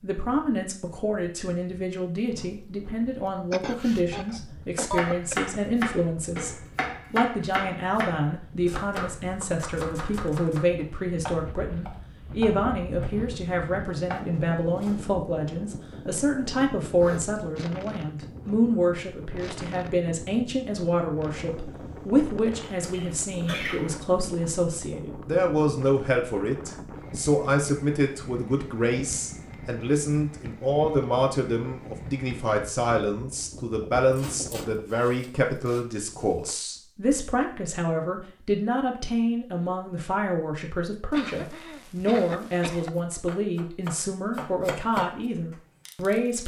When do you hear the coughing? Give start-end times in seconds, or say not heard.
3.5-5.4, 22.6-23.9, 41.1-42.9.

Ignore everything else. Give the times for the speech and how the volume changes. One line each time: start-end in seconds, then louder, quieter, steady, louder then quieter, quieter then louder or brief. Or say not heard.
0.0-46.4 steady.